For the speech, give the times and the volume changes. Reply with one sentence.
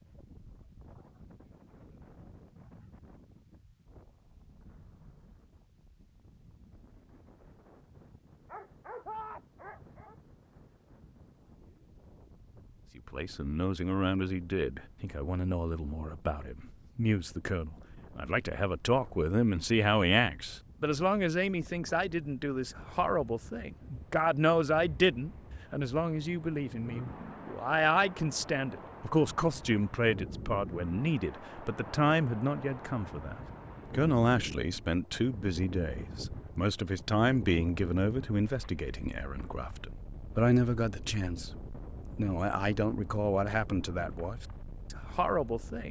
You can hear the speech from 12.9 to 45.8 s, at a steady volume.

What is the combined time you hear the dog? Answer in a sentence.
You can hear the dog for 2 seconds altogether.